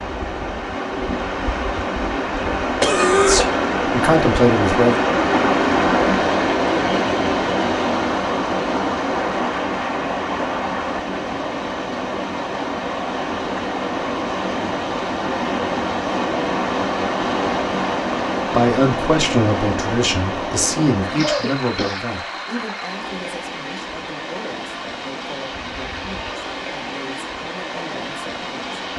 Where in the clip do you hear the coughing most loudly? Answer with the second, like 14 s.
3 s.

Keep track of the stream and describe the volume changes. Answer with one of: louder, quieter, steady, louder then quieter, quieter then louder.
quieter.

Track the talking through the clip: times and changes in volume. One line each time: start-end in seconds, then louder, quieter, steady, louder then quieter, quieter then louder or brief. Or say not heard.
3.2-5.0 brief
18.5-28.9 quieter.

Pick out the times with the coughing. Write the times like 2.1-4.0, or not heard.
2.8-3.5, 21.1-22.0.